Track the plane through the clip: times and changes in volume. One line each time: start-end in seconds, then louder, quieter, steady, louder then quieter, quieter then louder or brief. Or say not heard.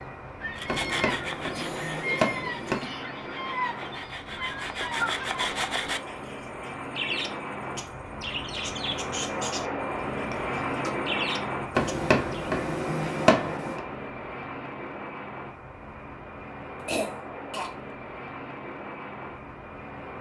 0.0-20.1 louder then quieter.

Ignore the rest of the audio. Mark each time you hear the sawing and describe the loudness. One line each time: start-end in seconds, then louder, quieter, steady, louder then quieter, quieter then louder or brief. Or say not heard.
0.6-6.0 quieter then louder.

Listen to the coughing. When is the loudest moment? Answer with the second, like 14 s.
17 s.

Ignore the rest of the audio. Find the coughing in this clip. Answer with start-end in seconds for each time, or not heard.
1.5-3.0, 10.2-10.9, 16.9-17.7.